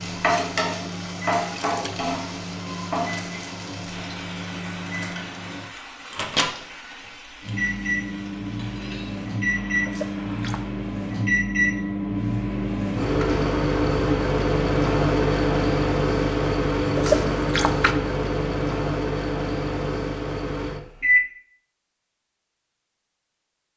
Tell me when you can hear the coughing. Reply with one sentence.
The coughing can't be heard in this clip.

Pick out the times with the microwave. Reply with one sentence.
You can hear the microwave from 0.0 to 21.2 s.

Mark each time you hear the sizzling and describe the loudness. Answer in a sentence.
You can hear the sizzling from 0.0 to 10.9 s, getting quieter.